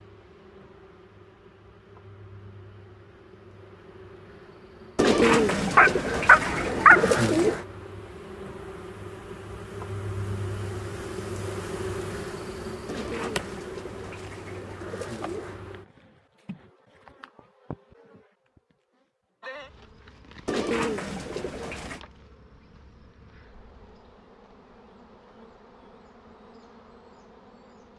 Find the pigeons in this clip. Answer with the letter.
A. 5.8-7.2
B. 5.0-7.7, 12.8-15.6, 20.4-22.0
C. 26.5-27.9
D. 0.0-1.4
B.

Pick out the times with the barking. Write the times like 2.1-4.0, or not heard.
5.8-7.2.